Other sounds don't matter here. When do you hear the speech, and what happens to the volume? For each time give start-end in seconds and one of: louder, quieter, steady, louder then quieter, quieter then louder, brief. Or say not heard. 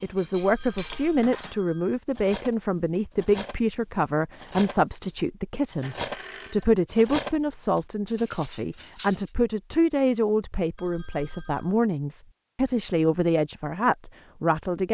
0.0-14.9 steady.